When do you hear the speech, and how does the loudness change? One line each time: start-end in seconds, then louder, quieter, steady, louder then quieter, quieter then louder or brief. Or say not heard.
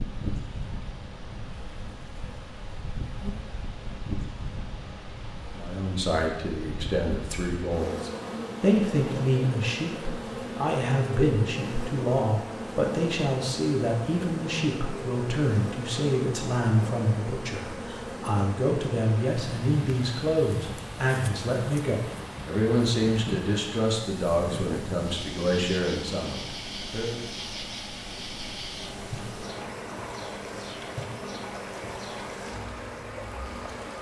5.5-27.2 steady.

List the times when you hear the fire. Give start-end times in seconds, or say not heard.
not heard.